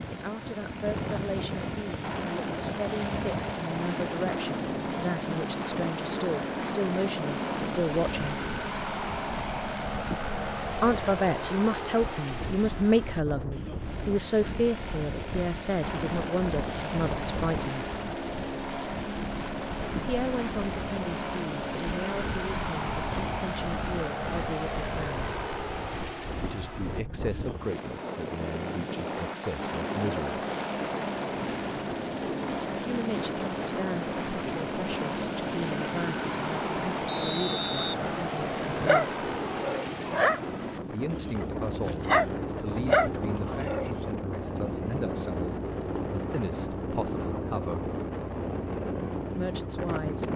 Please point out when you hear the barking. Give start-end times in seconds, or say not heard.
38.6-44.0.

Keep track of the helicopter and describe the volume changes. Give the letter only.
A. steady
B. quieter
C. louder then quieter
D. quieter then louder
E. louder
A.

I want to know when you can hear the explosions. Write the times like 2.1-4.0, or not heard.
not heard.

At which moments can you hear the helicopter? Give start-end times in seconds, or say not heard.
0.0-50.3.